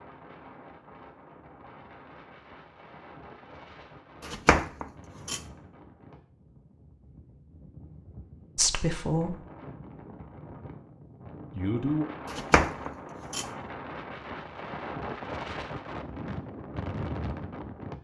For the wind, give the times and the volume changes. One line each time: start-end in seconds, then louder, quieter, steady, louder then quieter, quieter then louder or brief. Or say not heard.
0.0-17.9 louder.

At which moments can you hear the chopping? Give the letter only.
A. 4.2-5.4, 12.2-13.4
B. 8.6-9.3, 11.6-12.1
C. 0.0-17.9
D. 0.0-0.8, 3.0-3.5
A.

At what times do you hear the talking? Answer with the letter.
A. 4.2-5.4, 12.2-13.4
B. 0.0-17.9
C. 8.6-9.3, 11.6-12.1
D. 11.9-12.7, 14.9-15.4
C.